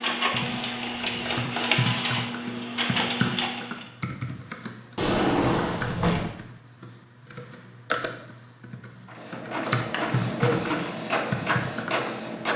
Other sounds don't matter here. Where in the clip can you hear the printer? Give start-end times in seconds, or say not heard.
0.0-3.9, 9.1-12.5.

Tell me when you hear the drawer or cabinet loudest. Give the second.
5 s.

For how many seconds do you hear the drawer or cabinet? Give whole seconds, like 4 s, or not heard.
4 s.